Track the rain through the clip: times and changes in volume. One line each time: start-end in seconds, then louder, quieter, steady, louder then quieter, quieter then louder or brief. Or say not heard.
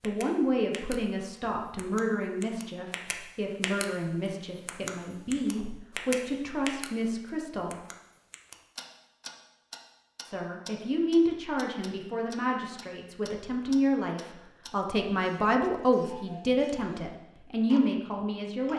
not heard.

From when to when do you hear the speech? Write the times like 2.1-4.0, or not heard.
0.0-7.8, 10.2-18.7.